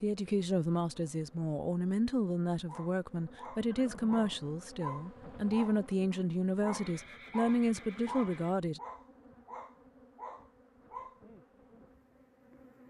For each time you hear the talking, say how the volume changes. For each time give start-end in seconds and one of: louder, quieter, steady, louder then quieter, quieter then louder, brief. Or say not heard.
0.0-8.8 steady.